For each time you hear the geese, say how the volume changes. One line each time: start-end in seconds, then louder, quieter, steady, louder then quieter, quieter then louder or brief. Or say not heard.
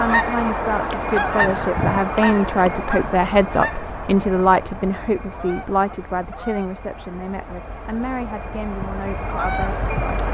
0.0-10.2 quieter then louder.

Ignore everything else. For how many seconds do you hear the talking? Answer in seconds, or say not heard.
10 s.